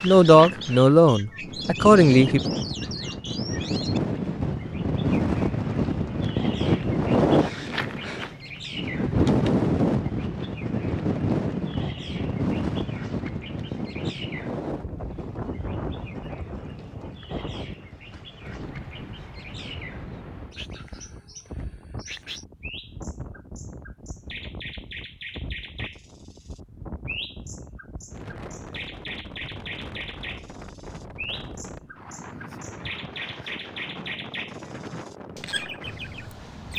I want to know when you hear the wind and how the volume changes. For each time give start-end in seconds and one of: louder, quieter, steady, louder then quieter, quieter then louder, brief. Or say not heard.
0.0-36.7 quieter.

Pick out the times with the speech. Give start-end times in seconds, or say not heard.
0.0-2.4.